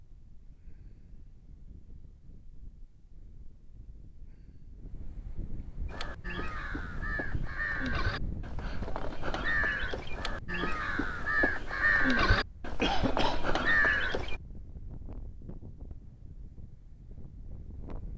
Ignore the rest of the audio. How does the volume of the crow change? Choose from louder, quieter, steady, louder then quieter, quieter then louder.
louder.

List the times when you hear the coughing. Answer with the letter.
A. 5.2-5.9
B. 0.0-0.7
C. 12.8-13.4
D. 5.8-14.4
C.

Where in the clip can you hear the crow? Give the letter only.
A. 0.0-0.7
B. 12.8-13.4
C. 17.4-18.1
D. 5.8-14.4
D.